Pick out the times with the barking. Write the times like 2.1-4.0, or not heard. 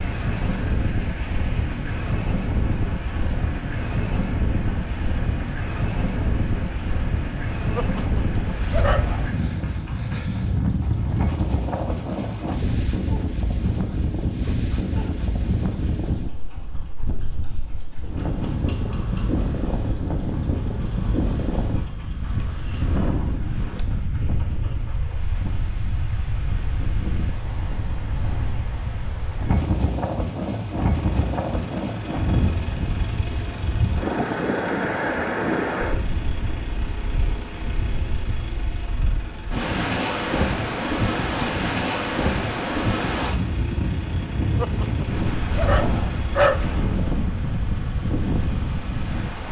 7.8-9.4, 44.5-46.6.